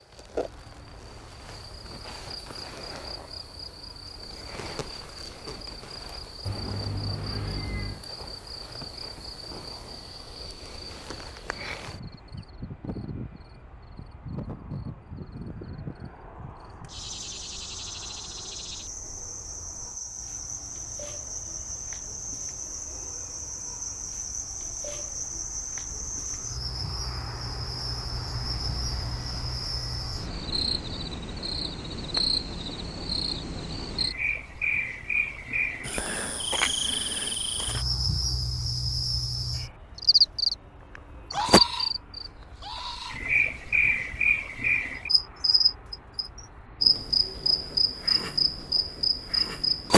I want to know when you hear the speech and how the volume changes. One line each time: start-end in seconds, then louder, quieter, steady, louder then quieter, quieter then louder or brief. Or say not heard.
not heard.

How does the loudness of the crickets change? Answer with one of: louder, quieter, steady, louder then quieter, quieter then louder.
louder.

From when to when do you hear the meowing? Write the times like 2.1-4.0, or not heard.
6.4-8.1.